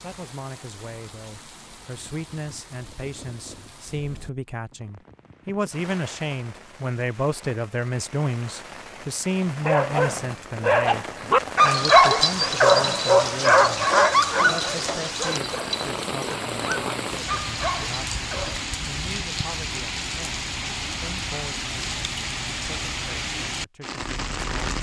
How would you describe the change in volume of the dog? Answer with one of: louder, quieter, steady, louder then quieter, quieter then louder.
quieter.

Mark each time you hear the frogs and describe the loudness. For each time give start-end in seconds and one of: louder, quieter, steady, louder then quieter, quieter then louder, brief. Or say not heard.
not heard.